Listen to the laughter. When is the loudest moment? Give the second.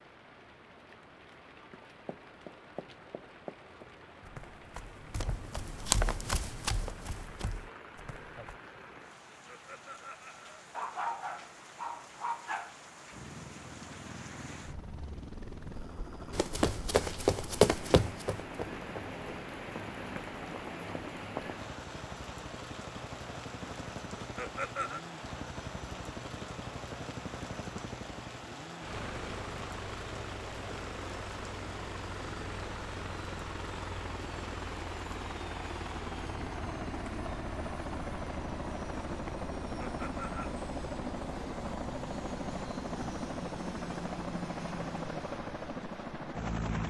25 s.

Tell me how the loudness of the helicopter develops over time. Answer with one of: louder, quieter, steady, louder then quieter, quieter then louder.
louder.